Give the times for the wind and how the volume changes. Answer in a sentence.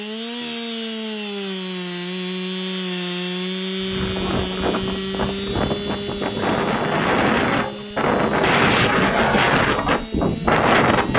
You can hear the wind from 3.8 to 11.1 s, getting louder.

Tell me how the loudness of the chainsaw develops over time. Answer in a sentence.
The loudness of the chainsaw goes down.